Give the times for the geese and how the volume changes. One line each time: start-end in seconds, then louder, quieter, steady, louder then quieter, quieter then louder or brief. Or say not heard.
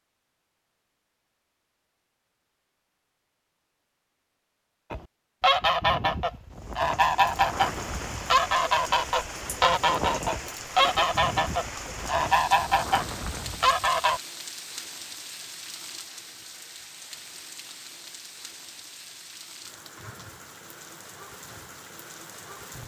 4.9-14.2 steady.